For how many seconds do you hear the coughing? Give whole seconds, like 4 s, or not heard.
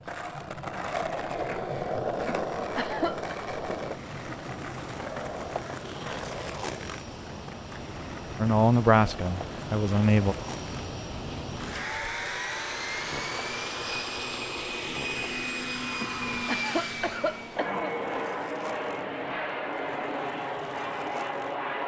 3 s.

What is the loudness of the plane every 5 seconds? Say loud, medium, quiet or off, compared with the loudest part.
quiet, medium, loud, loud, loud.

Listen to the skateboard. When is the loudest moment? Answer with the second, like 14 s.
2 s.